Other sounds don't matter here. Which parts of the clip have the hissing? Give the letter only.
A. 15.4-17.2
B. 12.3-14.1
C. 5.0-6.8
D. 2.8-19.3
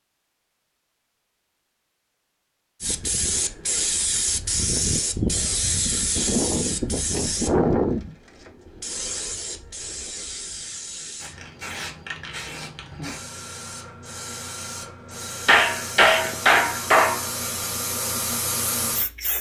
D.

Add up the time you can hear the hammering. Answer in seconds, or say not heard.
2 s.